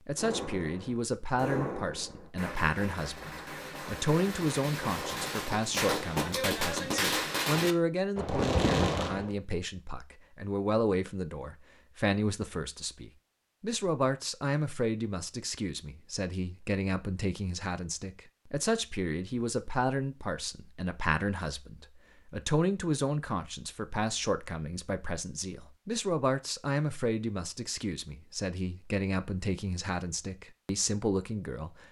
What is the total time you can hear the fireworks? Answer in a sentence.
The fireworks can be heard for 9 seconds in total.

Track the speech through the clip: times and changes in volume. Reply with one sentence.
You can hear the speech from 0.1 to 31.8 s, at a steady volume.